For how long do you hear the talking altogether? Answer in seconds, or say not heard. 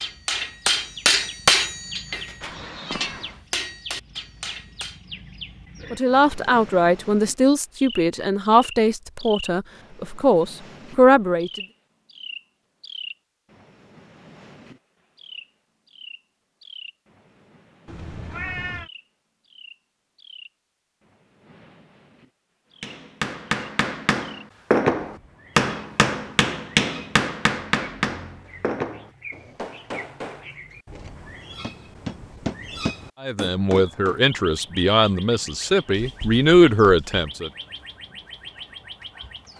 10 s.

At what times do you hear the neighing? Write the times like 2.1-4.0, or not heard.
not heard.